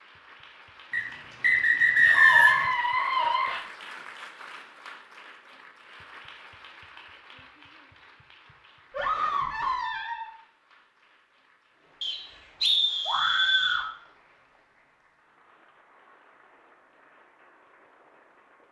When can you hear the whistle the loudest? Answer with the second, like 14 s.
2 s.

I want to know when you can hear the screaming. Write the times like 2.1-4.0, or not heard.
2.0-3.6, 8.9-10.3, 13.1-13.8.